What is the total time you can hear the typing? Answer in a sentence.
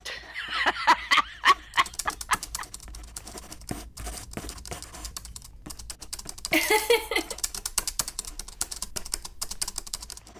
The typing can be heard for 9 seconds in total.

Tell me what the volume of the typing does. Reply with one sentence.
The loudness of the typing goes up.